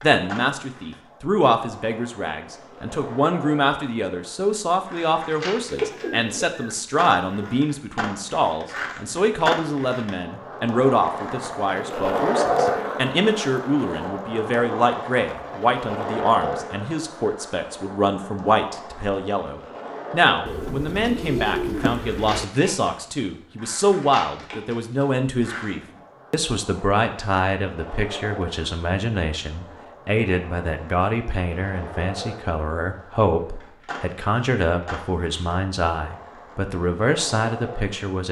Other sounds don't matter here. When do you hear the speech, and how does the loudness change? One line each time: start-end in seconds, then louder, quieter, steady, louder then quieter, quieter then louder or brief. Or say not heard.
0.0-38.2 steady.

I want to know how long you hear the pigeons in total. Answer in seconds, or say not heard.
4 s.